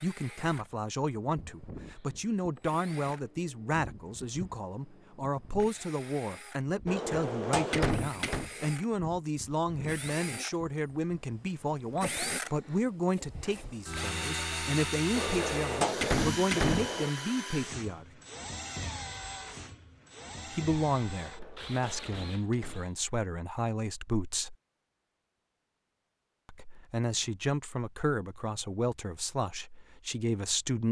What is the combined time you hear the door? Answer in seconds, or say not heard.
5 s.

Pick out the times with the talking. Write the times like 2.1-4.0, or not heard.
0.0-18.1, 20.5-24.6, 26.4-30.8.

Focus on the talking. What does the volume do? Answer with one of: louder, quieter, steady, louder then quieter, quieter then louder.
steady.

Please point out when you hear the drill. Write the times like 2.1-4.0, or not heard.
0.0-22.9.